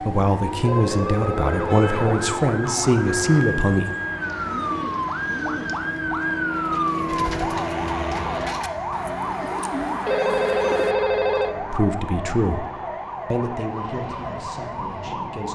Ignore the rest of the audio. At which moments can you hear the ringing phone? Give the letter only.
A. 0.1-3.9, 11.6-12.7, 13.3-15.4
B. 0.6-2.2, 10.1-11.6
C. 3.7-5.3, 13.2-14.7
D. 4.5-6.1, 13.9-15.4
B.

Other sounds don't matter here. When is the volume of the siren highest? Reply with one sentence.
The loudest moment of the siren is at 7 seconds.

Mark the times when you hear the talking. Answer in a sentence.
The talking can be heard from 0.1 to 3.9 s, from 11.6 to 12.7 s and from 13.3 to 15.4 s.